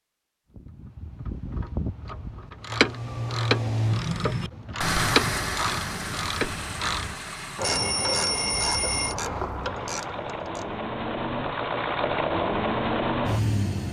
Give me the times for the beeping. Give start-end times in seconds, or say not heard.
7.6-9.2.